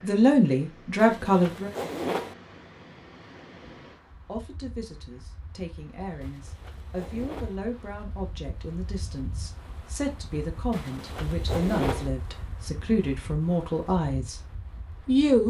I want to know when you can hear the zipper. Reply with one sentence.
The zipper can be heard from 0.9 to 2.4 s, from 6.2 to 7.6 s and from 10.7 to 12.1 s.